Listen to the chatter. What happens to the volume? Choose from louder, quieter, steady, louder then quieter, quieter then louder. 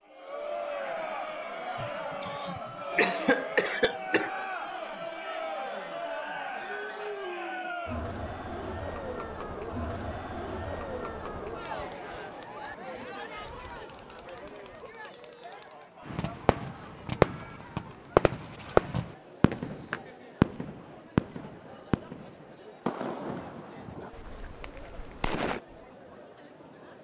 quieter.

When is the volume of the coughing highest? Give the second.
3 s.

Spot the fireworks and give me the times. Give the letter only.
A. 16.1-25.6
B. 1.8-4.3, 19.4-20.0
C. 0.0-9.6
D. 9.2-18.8
A.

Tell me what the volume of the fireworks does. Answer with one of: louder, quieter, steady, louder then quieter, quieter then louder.
quieter.